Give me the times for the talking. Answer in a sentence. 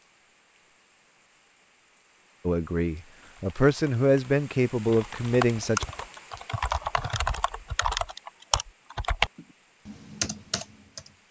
You can hear the talking from 2.5 to 5.8 s.